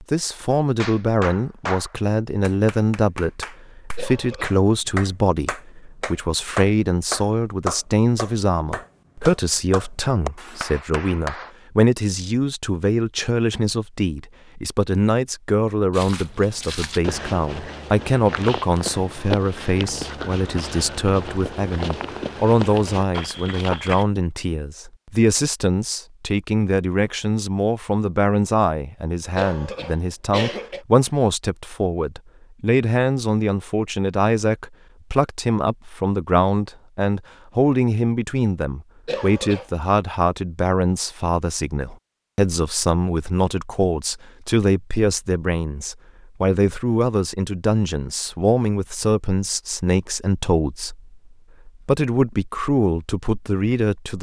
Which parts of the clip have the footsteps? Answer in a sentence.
You can hear the footsteps from 15.9 to 24.1 s.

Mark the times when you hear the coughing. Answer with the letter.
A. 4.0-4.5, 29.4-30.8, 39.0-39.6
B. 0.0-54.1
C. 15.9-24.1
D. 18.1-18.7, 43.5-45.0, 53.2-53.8
A.